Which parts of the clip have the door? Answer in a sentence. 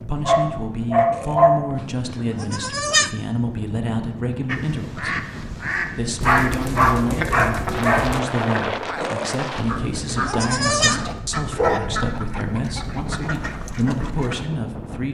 You can't hear the door here.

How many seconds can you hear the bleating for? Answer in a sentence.
The bleating can be heard for 4 seconds in total.